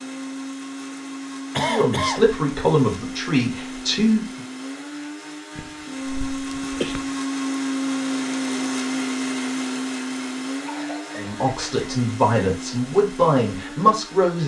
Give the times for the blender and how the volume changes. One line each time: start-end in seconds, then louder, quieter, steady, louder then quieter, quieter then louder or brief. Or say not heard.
0.0-14.4 louder then quieter.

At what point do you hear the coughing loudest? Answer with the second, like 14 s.
2 s.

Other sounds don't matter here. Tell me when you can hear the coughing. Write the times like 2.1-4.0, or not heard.
1.6-2.3, 5.5-7.1, 10.7-11.9.